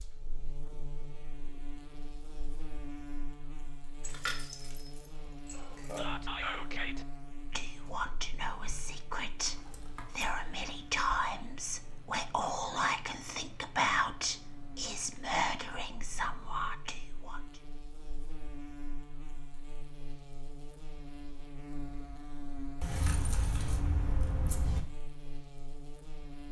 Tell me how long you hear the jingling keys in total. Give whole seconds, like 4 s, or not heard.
5 s.